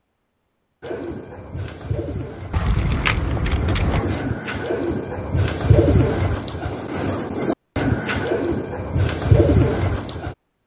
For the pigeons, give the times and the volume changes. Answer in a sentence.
The pigeons can be heard from 0.8 to 10.3 s, getting louder.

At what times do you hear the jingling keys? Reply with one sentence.
The jingling keys can be heard from 2.5 to 4.0 s.